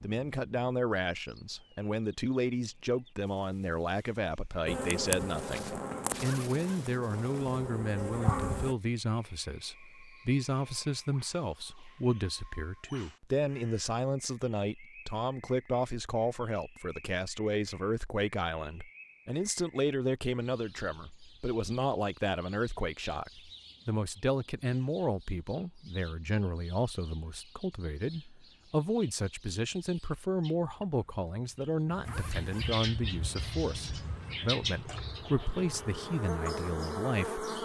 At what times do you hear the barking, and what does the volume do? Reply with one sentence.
The barking can't be heard in this clip.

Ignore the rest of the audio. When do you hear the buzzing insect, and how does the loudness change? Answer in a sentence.
You can hear the buzzing insect from 4.7 to 8.8 s, getting quieter then louder; and from 33.0 to 37.6 s, getting louder.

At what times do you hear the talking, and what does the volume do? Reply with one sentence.
You can hear the talking from 0.0 to 37.5 s, at a steady volume.